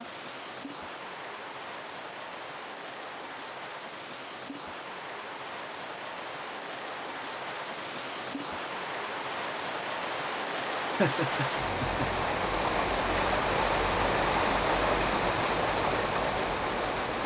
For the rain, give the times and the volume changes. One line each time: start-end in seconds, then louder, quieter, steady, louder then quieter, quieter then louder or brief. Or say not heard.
0.0-17.2 louder.